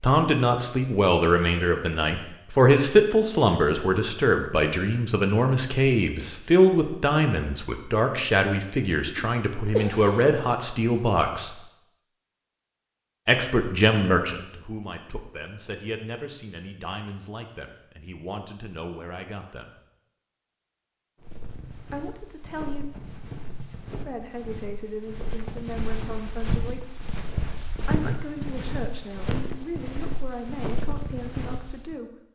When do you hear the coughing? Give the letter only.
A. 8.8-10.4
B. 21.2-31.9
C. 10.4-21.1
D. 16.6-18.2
A.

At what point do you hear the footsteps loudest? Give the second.
28 s.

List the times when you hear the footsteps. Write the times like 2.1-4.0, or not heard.
21.2-31.9.